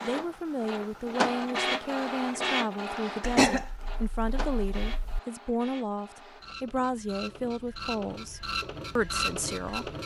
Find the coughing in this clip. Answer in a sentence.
The coughing can be heard from 3.2 to 5.2 s.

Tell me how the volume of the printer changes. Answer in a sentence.
The loudness of the printer goes down, then up.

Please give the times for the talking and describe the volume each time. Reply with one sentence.
The talking can be heard from 0.0 to 9.9 s, at a steady volume.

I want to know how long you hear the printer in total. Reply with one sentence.
You can hear the printer for 10 seconds altogether.